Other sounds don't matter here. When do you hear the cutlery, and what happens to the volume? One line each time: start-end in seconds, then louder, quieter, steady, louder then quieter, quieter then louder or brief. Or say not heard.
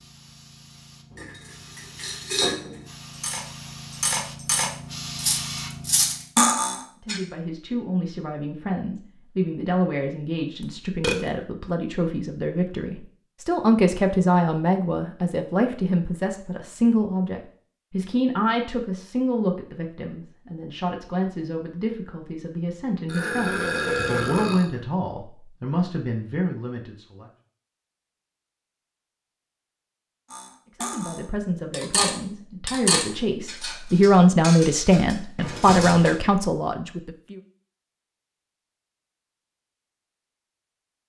1.1-7.2 quieter then louder
30.3-36.2 louder then quieter.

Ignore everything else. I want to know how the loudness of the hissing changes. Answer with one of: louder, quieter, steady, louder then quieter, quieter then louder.
louder.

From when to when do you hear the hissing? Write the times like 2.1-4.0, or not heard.
0.0-6.3.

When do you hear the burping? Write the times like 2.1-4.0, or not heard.
10.6-11.2, 23.1-24.7, 35.4-36.0.